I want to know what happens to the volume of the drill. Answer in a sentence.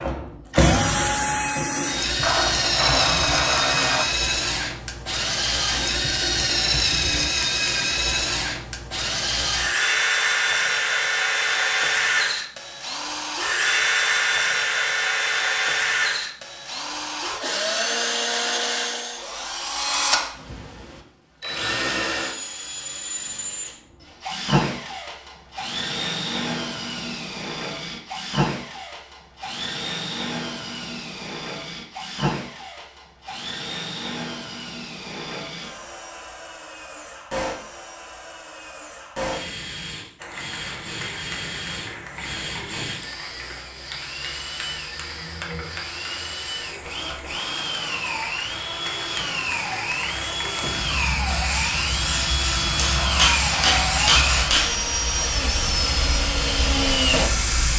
The loudness of the drill goes down, then up.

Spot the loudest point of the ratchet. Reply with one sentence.
The loudest moment of the ratchet is at 3 seconds.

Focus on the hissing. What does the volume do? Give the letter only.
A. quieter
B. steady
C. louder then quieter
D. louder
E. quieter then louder
D.